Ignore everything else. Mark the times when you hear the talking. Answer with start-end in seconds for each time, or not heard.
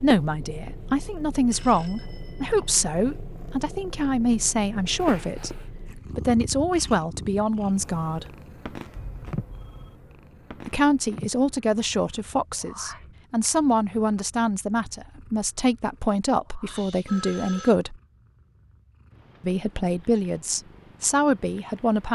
0.0-5.5, 6.2-8.2, 10.7-17.9, 19.4-22.0.